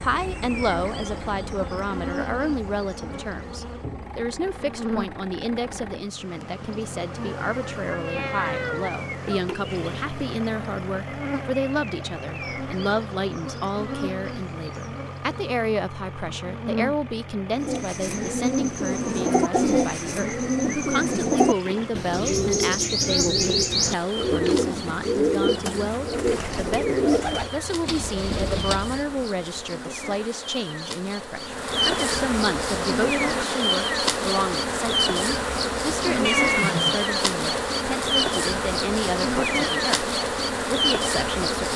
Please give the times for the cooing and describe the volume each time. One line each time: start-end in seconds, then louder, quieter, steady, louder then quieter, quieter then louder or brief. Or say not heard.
17.5-29.2 steady.